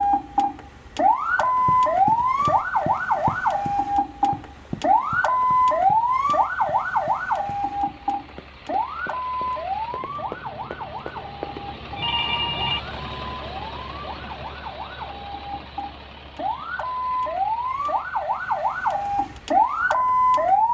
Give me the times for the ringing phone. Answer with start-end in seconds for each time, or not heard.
11.9-12.8.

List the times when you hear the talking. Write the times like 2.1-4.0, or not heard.
not heard.